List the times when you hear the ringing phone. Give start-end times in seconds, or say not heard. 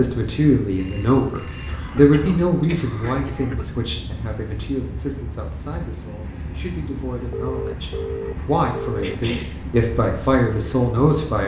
0.8-1.9, 7.3-9.2.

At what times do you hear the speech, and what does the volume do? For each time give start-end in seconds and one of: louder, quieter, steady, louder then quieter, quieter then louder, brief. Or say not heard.
0.0-11.4 quieter then louder.